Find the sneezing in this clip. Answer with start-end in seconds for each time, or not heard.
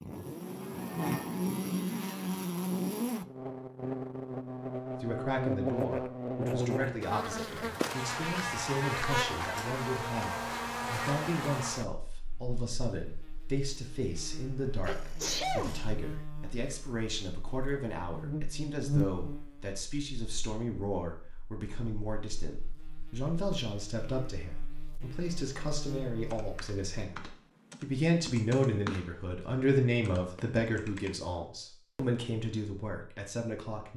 14.8-15.8.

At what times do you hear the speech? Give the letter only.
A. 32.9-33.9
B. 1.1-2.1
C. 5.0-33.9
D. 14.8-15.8
C.